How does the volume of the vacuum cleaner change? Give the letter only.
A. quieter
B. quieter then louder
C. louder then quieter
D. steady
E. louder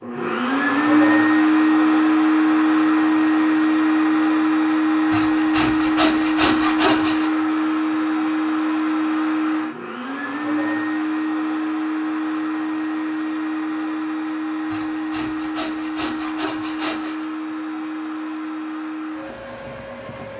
A.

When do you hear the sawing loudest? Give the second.
7 s.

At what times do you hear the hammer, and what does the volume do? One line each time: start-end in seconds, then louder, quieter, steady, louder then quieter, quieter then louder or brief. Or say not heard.
not heard.